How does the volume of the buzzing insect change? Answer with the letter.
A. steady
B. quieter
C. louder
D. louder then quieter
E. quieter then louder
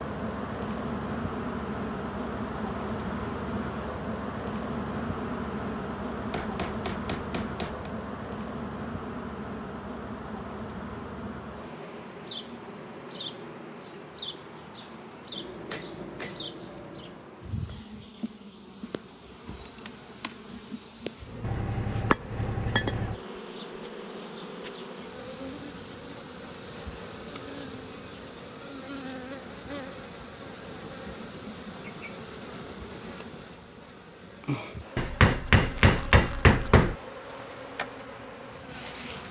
B.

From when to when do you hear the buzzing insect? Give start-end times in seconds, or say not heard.
0.0-39.2.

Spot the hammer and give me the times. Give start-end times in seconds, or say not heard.
6.3-7.9, 15.3-17.3, 21.4-23.1, 35.0-37.0.